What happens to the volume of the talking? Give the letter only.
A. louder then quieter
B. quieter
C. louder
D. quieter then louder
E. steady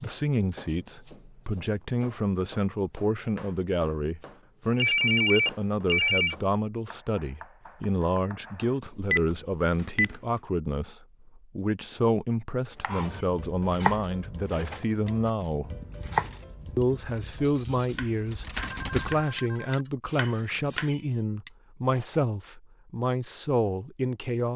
E.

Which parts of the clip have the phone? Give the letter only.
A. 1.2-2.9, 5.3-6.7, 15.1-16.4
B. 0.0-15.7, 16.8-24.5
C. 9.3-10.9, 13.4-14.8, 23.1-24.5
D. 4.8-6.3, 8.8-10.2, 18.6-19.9
D.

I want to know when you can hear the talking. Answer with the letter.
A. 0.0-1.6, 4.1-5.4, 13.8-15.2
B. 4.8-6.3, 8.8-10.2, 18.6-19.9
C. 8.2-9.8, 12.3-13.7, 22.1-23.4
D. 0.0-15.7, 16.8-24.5
D.